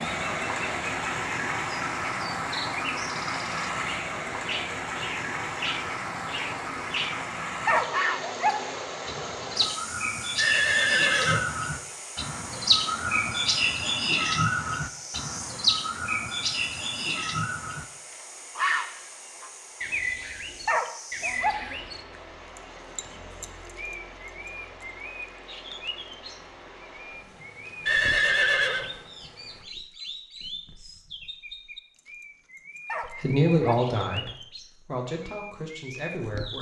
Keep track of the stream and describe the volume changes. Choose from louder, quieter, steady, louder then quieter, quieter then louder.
quieter.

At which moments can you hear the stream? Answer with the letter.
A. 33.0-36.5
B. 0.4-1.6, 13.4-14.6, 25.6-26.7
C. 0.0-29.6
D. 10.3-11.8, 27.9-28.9
C.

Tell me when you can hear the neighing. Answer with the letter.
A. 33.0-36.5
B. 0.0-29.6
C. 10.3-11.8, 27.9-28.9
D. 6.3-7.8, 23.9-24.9
C.